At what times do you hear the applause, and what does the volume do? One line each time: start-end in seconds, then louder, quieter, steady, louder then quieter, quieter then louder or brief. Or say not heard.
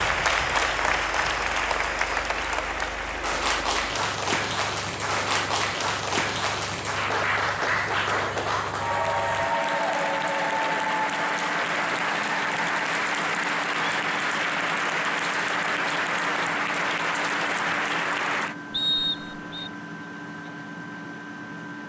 0.0-18.6 steady.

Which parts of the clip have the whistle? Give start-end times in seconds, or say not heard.
18.7-19.7.